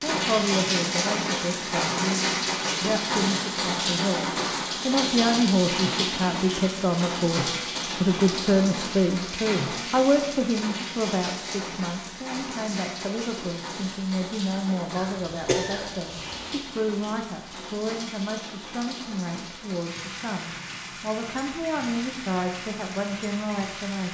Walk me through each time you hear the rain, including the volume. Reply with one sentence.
You can hear the rain from 0.0 to 24.0 s, getting quieter.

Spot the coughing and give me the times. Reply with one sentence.
You can hear the coughing from 14.9 to 16.6 s.